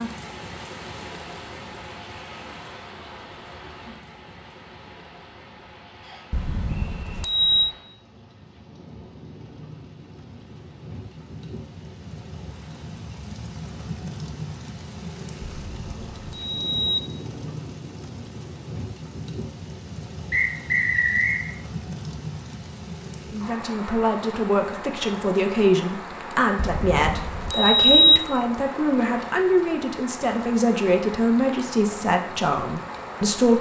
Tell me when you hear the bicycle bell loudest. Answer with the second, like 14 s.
28 s.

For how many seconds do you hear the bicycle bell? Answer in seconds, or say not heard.
5 s.